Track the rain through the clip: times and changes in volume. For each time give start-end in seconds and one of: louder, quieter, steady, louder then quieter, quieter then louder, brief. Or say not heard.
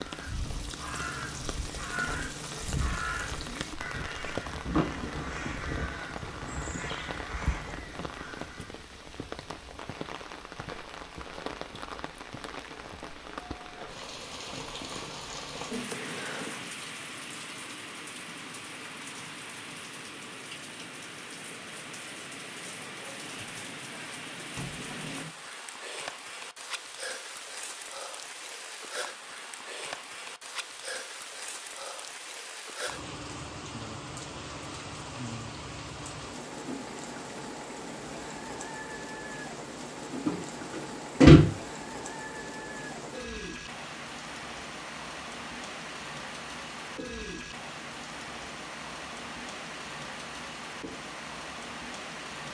0.0-52.4 steady.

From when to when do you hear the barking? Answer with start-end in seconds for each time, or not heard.
not heard.